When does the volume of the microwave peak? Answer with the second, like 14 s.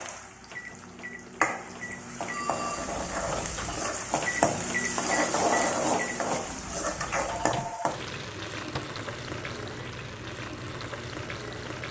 5 s.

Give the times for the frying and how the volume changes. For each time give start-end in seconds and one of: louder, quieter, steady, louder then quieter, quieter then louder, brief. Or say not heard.
0.0-11.8 louder then quieter.